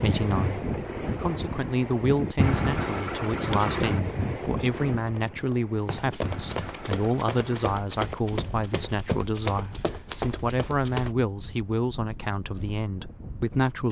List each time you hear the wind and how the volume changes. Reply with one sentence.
You can hear the wind from 0.0 to 13.8 s, getting quieter.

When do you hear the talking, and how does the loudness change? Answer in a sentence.
You can hear the talking from 0.0 to 13.8 s, at a steady volume.